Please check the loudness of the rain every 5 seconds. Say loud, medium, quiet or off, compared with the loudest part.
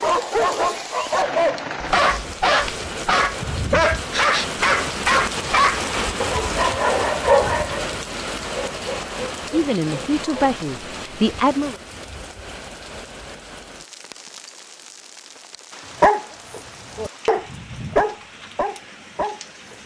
loud, loud, medium, quiet.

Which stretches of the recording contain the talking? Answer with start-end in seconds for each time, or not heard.
9.5-11.8.